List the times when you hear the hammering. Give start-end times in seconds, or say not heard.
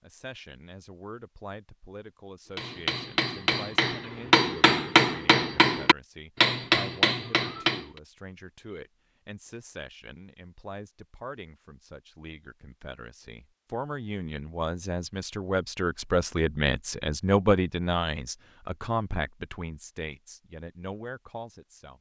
2.5-8.0.